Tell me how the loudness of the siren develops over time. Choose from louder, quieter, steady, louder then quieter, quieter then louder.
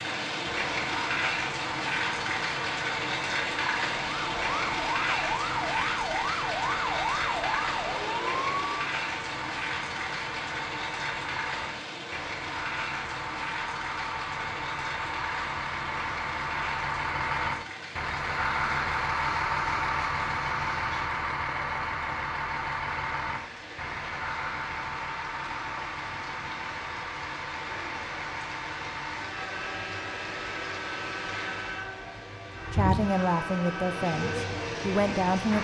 steady.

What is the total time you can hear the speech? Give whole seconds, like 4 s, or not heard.
3 s.